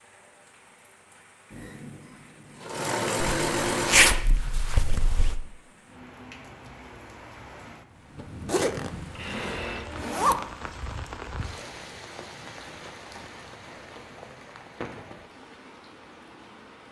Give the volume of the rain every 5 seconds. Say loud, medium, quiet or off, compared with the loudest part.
quiet, loud, loud, medium.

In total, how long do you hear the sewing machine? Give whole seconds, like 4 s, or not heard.
5 s.